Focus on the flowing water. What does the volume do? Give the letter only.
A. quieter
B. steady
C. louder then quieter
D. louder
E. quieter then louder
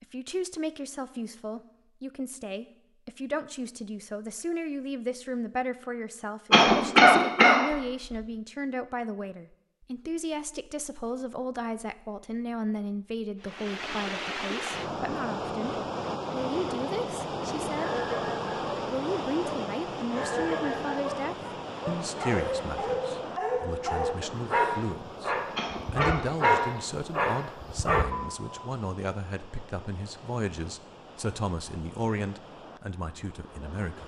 A.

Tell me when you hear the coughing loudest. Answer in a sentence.
The volume of the coughing peaks at 7 seconds.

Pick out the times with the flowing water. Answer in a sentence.
You can hear the flowing water from 13.4 to 34.0 s.